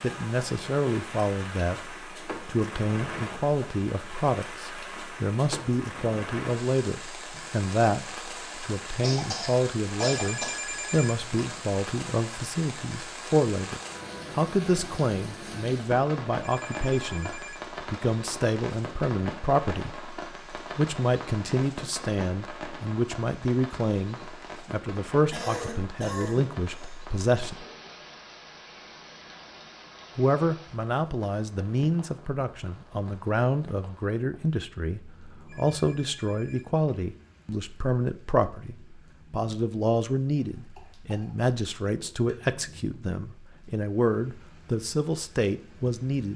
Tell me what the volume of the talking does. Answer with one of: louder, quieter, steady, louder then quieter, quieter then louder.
steady.